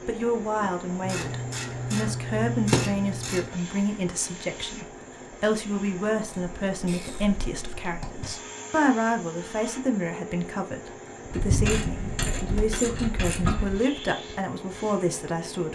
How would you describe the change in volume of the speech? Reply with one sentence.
The loudness of the speech stays about the same.